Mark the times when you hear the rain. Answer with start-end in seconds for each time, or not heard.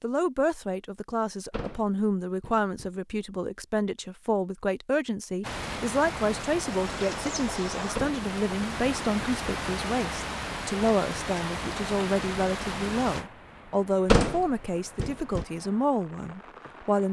5.4-17.0.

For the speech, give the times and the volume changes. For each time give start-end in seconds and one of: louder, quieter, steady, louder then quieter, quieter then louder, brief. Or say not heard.
0.0-17.0 steady.